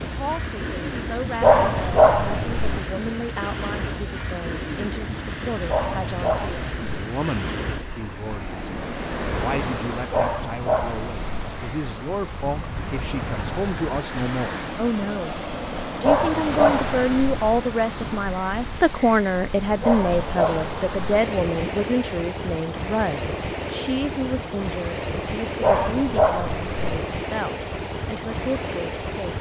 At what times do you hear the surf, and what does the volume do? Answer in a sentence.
You can hear the surf from 0.0 to 29.3 s, at a steady volume.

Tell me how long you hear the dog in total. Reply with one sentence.
The dog can be heard for 8 seconds in total.